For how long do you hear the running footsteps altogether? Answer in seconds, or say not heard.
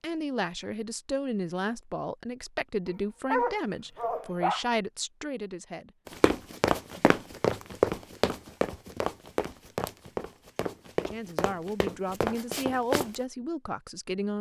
7 s.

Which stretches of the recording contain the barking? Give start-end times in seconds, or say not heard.
2.9-4.7.